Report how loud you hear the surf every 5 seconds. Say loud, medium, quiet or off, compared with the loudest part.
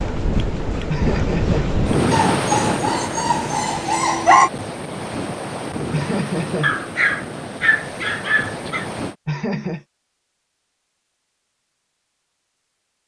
loud, medium, off.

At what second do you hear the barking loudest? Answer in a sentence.
The volume of the barking peaks at 4 seconds.